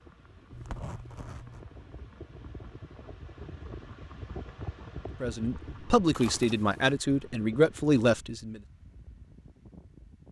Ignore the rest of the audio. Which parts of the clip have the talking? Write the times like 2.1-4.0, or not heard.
5.2-8.6.